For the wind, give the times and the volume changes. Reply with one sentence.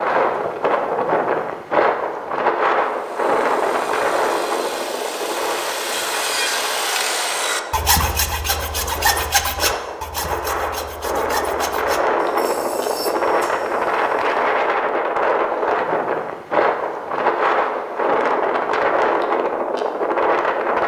The wind can be heard from 0.0 to 20.8 s, getting quieter then louder.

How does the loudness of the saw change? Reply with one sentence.
The loudness of the saw goes up, then down.